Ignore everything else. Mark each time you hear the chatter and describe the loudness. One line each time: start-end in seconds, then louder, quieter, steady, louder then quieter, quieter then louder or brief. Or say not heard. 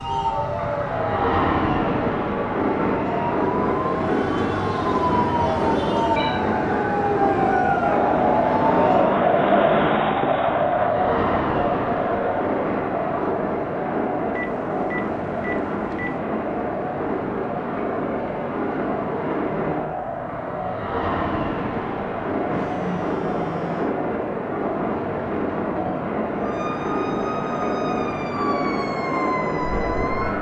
0.2-30.3 louder then quieter.